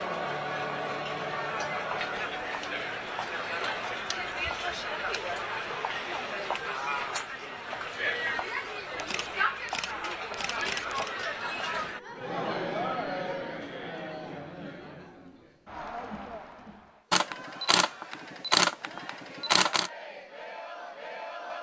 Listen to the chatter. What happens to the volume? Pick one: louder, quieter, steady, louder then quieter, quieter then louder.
quieter.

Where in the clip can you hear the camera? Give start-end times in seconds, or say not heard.
4.1-5.5, 8.9-11.2, 17.1-19.9.